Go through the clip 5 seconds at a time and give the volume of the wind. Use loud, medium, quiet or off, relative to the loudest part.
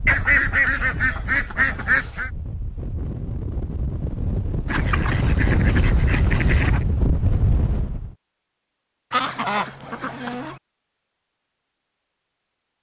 medium, loud, off.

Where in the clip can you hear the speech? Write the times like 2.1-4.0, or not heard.
not heard.